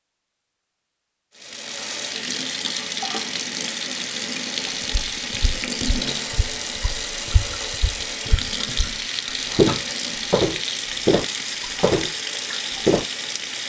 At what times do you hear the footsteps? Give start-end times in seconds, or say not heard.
4.9-13.1.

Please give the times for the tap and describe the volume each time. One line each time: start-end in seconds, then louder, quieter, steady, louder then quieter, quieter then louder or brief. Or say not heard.
1.4-13.6 steady.